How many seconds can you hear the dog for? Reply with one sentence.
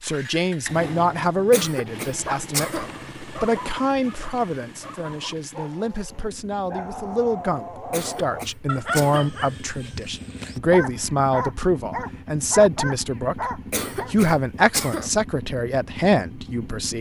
The dog can be heard for 12 seconds in total.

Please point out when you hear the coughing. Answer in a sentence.
You can hear the coughing from 1.5 to 2.9 s, from 7.9 to 9.3 s and from 13.7 to 15.1 s.